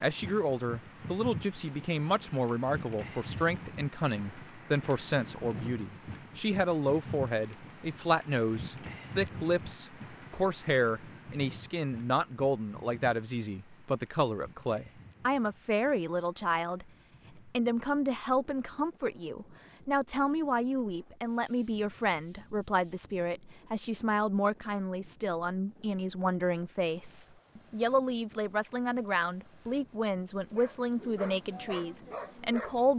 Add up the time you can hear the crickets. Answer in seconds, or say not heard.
not heard.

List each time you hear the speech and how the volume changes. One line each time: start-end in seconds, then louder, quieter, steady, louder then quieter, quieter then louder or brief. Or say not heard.
0.0-32.9 steady.